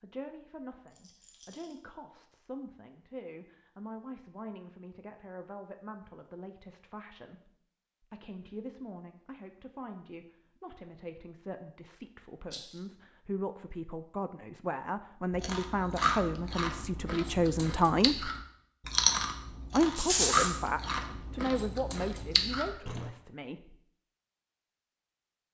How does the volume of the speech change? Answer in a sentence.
The loudness of the speech goes up.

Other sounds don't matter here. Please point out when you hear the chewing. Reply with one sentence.
You can hear the chewing from 15.3 to 23.1 s.